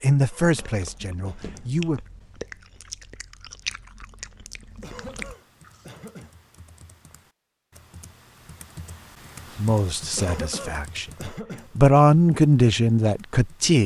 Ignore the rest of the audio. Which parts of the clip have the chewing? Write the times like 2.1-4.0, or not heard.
0.4-6.0.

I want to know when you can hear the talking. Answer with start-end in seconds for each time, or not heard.
0.0-2.0, 9.6-13.8.